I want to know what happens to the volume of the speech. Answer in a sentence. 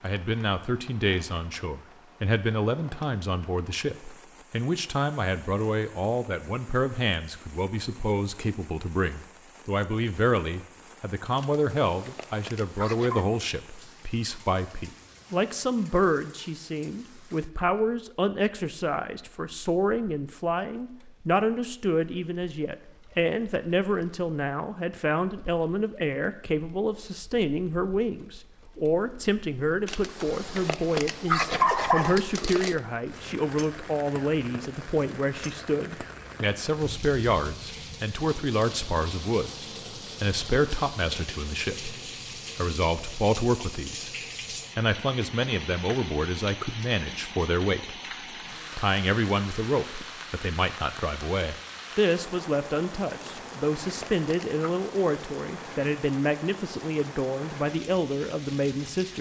The loudness of the speech stays about the same.